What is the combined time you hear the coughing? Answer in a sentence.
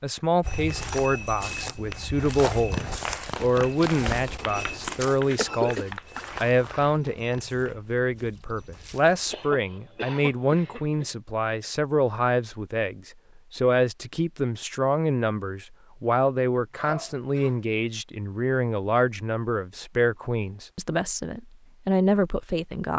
The coughing can be heard for 3 seconds in total.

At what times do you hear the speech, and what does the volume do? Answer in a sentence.
You can hear the speech from 0.0 to 22.9 s, at a steady volume.